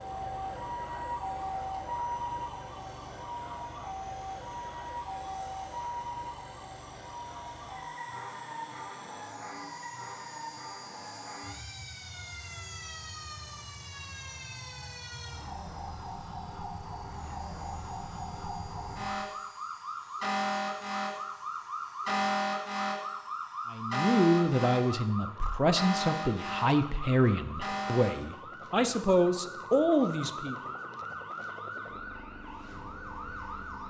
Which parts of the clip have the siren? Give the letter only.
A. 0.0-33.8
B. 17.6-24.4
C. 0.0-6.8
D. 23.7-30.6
A.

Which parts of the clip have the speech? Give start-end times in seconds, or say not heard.
23.7-30.6.